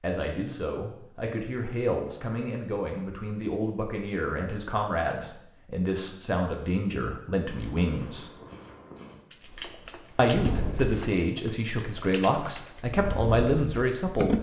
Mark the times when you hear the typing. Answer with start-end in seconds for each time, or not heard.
9.3-14.3.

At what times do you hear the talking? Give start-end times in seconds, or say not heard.
0.0-8.2, 10.2-14.3.